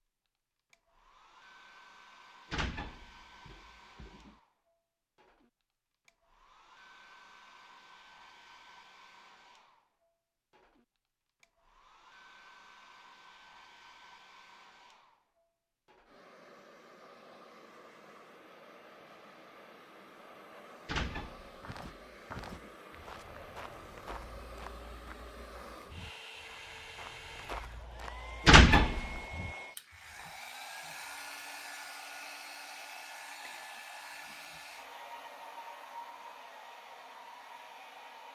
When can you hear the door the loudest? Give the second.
29 s.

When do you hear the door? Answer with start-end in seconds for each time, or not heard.
2.5-4.3, 20.9-22.7, 28.4-29.1.